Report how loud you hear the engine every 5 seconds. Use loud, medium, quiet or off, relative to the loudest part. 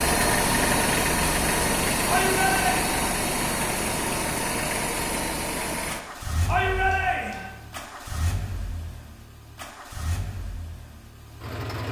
loud, medium, quiet.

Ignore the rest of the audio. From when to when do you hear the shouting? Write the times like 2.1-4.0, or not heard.
2.0-3.0, 6.5-7.5.